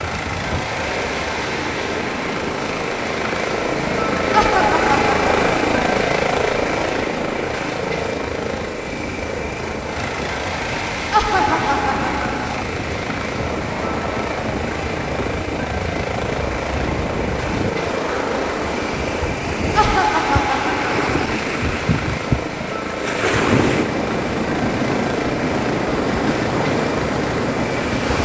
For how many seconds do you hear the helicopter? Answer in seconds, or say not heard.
28 s.